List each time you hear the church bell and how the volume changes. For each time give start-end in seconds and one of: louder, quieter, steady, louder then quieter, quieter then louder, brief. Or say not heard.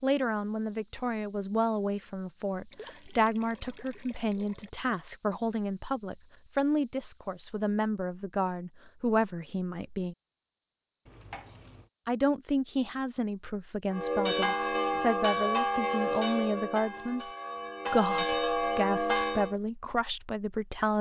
13.9-19.6 quieter then louder.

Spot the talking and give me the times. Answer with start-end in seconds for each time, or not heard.
0.0-10.2, 12.1-17.3, 17.9-20.9.